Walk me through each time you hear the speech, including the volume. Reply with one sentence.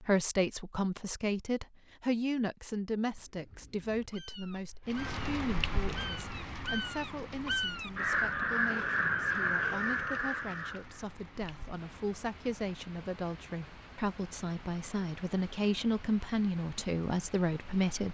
You can hear the speech from 0.0 to 18.0 s, getting quieter then louder.